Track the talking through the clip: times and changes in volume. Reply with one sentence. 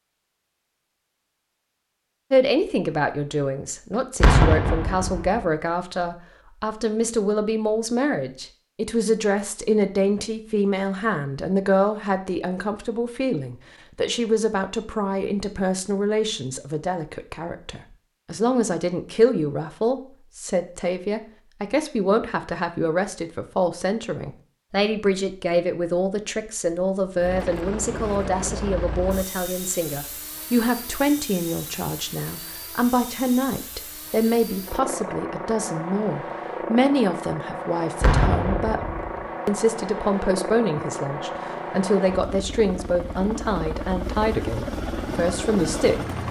The talking can be heard from 2.3 to 38.8 s, at a steady volume; and from 39.5 to 46.1 s, at a steady volume.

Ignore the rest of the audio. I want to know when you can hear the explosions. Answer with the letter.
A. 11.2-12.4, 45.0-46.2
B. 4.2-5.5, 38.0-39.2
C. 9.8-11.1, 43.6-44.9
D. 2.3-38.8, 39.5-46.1
B.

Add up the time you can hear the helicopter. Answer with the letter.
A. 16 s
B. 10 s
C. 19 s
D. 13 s
C.